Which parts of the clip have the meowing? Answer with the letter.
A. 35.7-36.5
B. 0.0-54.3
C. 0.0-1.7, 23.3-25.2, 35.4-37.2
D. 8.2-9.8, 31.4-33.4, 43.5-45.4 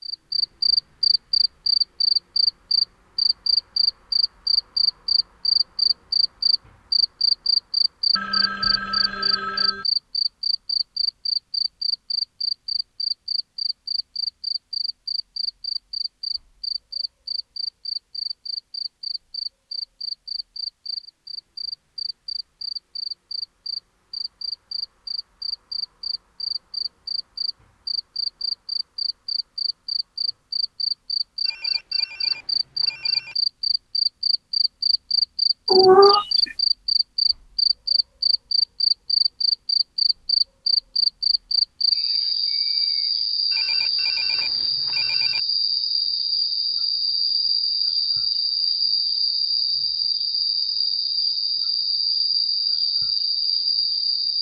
A.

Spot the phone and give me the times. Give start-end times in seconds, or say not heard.
8.2-9.8, 31.4-33.4, 43.5-45.4.